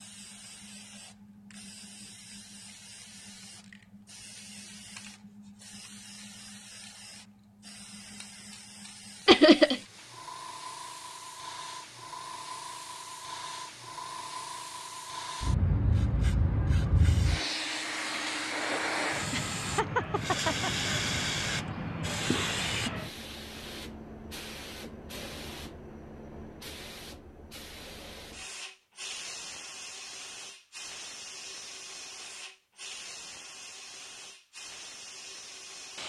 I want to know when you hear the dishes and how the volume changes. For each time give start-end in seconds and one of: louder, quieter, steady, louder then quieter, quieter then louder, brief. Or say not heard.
not heard.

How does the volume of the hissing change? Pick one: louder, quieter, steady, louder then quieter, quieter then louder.
louder then quieter.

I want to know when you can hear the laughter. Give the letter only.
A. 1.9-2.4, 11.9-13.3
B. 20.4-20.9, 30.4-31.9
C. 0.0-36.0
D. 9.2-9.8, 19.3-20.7
D.